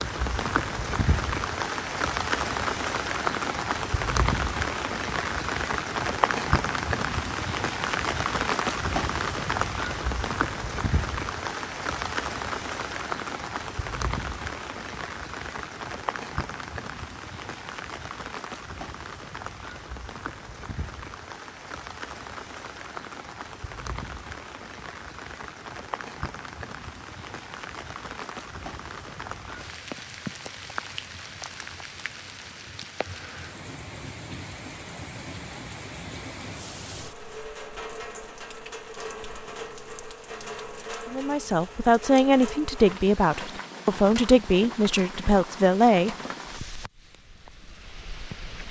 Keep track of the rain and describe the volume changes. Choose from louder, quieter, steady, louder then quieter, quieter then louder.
quieter.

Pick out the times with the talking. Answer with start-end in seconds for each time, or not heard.
41.1-46.1.